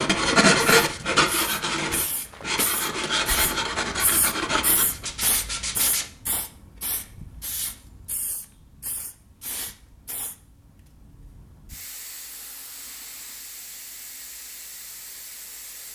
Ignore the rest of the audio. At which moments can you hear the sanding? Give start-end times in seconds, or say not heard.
0.0-6.1.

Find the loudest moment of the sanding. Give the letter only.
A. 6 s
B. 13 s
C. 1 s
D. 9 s
C.